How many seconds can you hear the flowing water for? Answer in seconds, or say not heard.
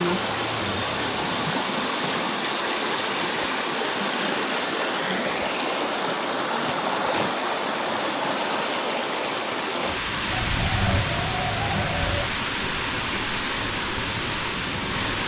15 s.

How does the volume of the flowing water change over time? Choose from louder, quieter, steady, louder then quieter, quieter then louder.
steady.